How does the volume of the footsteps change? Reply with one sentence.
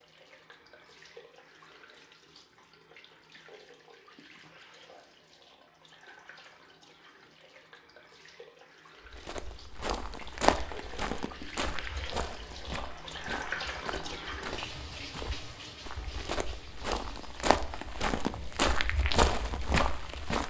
The loudness of the footsteps goes down, then up.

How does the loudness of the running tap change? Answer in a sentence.
The loudness of the running tap goes up, then down.